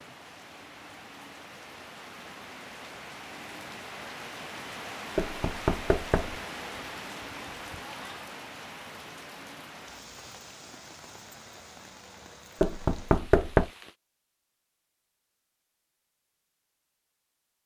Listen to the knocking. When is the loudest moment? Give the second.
13 s.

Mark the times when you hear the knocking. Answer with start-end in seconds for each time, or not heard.
5.2-6.3, 12.6-13.7.